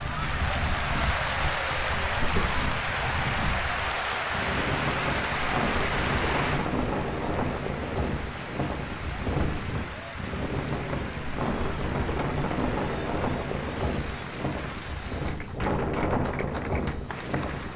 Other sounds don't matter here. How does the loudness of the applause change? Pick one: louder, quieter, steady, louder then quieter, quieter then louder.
quieter.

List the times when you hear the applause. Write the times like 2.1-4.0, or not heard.
0.0-17.7.